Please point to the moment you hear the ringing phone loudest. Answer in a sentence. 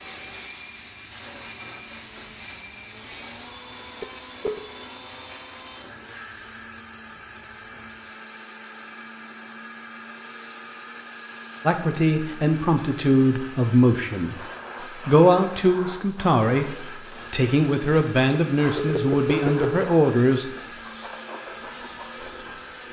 The volume of the ringing phone peaks at 19 seconds.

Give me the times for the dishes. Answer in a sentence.
You can't hear the dishes here.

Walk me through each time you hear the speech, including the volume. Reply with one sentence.
You can hear the speech briefly from 11.7 to 14.3 s; and from 15.1 to 20.4 s, at a steady volume.